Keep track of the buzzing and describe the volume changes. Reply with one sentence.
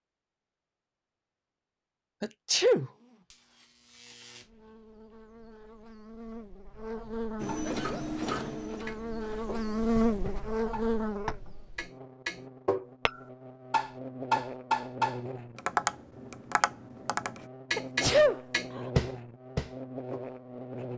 The loudness of the buzzing goes up, then down.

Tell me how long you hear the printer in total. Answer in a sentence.
You can hear the printer for 3 seconds altogether.